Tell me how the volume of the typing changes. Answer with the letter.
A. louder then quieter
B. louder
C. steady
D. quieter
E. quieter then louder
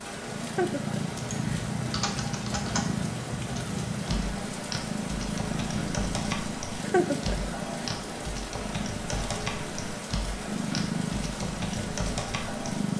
C.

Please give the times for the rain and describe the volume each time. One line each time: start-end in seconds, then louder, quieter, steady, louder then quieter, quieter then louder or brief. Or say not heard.
0.0-12.9 steady.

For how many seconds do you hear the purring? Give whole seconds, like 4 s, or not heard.
13 s.